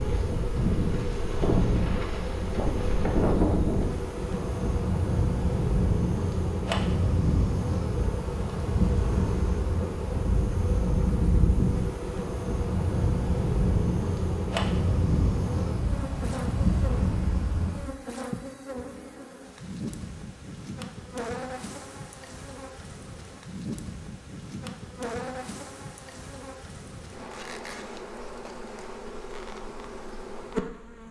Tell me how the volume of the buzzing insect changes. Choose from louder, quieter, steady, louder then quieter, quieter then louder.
steady.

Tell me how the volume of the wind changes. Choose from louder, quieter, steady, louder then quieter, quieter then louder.
steady.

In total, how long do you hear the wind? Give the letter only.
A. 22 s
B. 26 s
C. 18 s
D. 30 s
C.